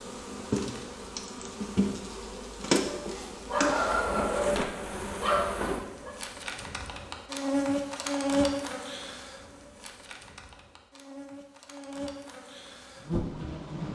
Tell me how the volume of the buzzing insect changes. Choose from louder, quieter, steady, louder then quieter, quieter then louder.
quieter.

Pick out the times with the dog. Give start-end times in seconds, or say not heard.
2.8-6.2.